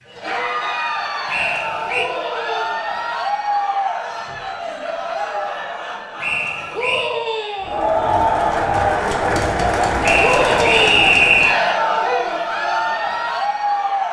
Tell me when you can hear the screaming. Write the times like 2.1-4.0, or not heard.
1.9-2.8, 6.7-7.8, 10.2-11.2.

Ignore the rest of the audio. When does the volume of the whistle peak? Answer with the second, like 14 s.
11 s.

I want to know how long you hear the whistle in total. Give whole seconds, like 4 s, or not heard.
3 s.